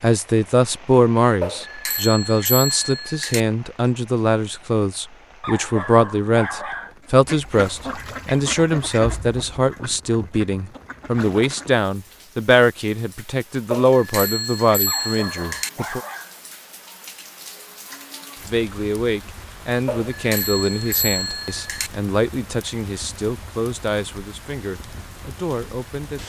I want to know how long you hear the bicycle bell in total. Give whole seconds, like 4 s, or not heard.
6 s.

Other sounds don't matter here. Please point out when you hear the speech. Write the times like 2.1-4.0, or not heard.
0.0-16.0, 18.4-26.2.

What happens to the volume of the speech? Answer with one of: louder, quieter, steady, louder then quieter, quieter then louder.
quieter.